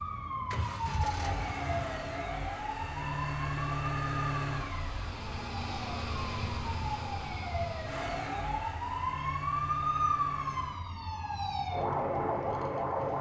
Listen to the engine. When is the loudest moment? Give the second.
4 s.